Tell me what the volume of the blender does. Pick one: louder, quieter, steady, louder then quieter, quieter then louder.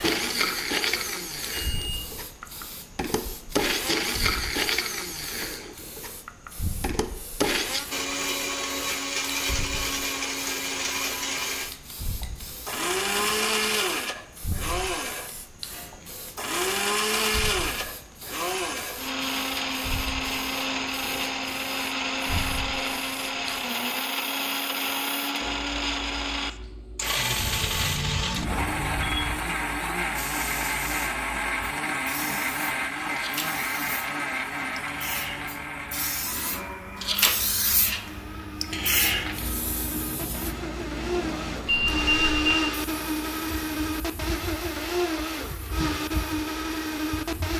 steady.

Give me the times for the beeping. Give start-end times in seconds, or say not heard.
1.7-2.5, 27.4-29.4, 41.6-42.5.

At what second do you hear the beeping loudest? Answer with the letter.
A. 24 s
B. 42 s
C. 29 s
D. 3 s
B.